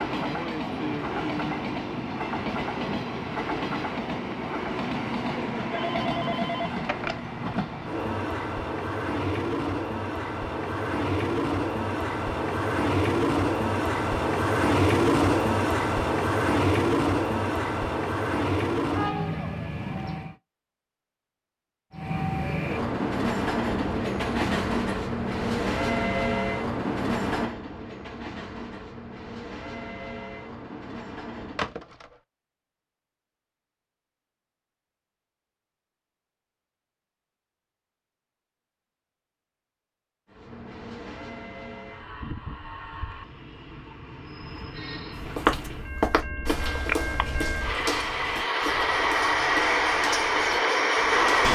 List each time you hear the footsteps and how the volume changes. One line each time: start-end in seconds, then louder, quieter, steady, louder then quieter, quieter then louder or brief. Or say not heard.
45.1-51.5 quieter.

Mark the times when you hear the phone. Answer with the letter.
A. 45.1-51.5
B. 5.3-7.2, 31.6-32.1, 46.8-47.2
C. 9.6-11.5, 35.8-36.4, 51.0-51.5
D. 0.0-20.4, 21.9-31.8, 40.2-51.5
B.